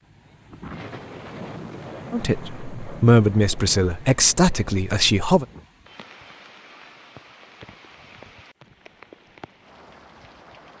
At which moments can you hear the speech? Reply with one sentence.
The speech can be heard from 2.1 to 5.5 s.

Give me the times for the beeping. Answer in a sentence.
You can't hear the beeping here.